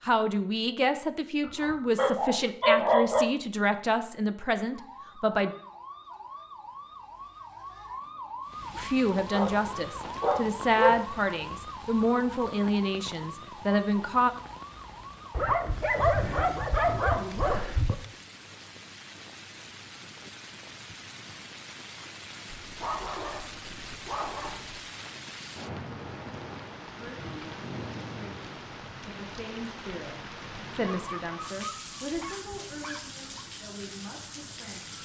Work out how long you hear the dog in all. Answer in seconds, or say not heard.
11 s.